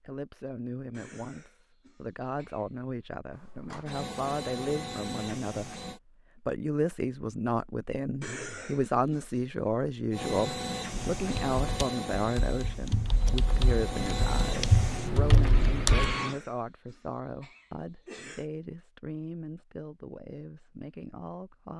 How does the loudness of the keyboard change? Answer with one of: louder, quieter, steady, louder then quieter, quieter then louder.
louder.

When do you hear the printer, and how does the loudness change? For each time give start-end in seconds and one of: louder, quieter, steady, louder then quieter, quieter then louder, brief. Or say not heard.
3.3-6.0 brief
10.1-16.4 quieter then louder.